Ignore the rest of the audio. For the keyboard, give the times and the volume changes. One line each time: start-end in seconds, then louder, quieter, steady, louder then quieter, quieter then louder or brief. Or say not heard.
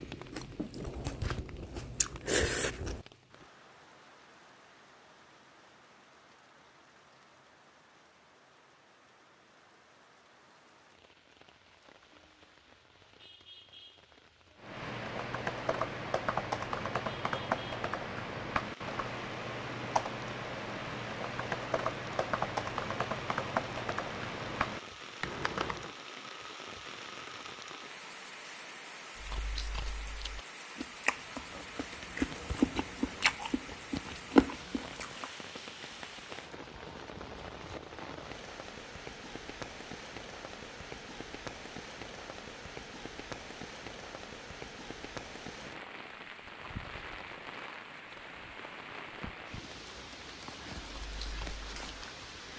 14.6-25.9 steady.